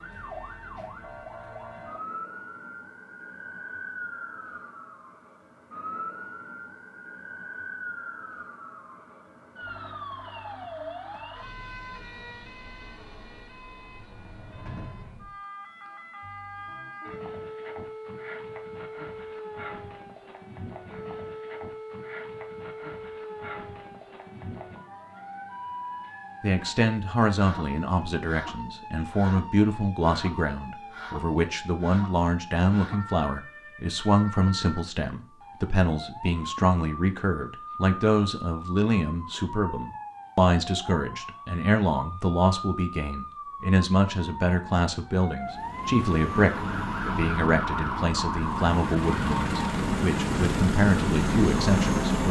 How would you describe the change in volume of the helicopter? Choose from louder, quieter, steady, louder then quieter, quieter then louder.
louder.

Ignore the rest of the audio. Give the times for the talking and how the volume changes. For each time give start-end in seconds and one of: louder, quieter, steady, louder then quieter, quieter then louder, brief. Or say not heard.
26.4-52.2 steady.